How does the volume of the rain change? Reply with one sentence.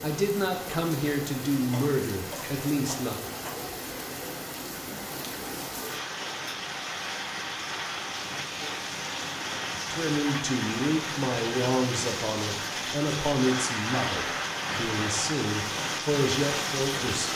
The loudness of the rain goes up.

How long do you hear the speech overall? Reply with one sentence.
The speech can be heard for 11 seconds in total.